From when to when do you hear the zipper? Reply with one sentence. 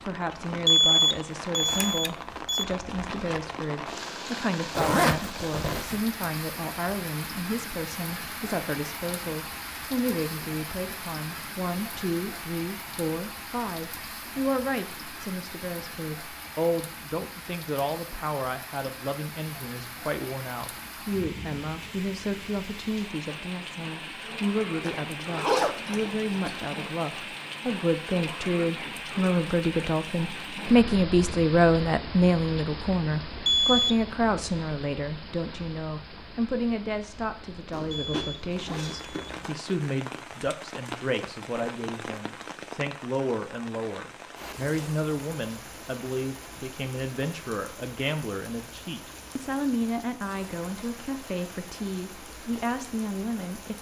The zipper can be heard from 4.7 to 6.0 s, from 24.8 to 26.6 s and from 37.7 to 39.5 s.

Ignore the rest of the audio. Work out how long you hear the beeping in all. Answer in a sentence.
You can hear the beeping for 4 seconds altogether.